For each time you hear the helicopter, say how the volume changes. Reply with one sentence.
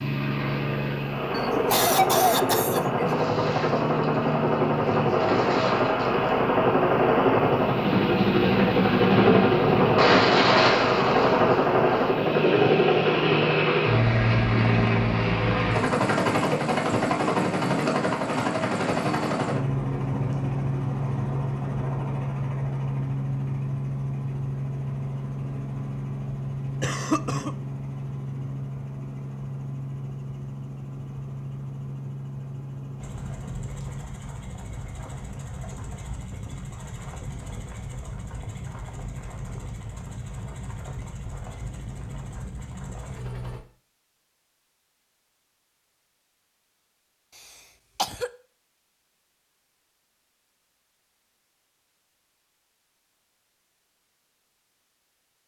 The helicopter can be heard from 0.0 to 43.6 s, getting quieter.